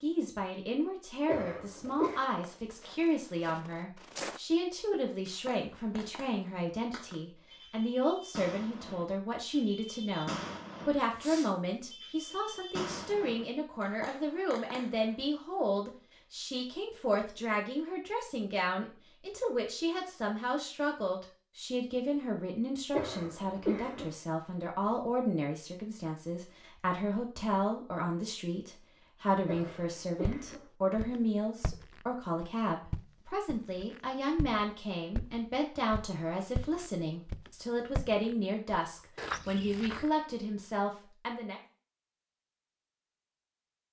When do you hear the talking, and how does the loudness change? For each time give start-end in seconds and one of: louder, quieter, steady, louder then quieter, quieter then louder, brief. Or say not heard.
0.0-41.6 steady.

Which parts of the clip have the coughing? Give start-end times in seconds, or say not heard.
1.2-2.2, 22.9-24.1, 29.4-30.6.